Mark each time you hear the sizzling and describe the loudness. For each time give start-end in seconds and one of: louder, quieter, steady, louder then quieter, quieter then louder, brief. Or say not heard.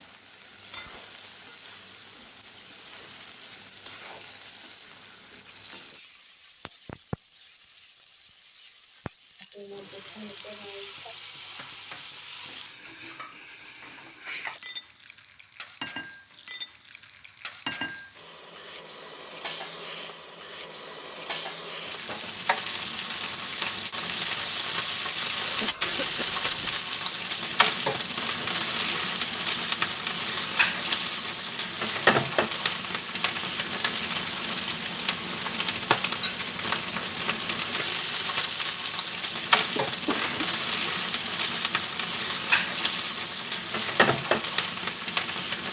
0.0-45.6 louder.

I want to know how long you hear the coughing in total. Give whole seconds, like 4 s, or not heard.
4 s.